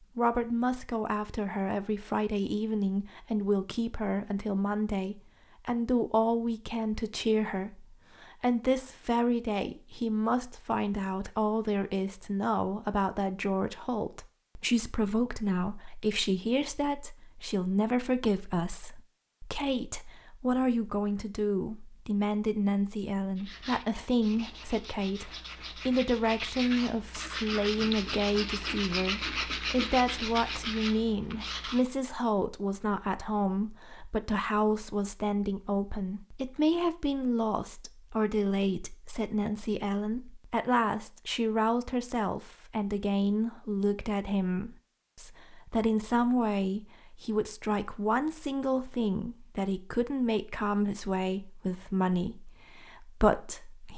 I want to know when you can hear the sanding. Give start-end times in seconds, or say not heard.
23.4-31.9.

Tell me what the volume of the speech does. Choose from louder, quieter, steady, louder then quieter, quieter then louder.
steady.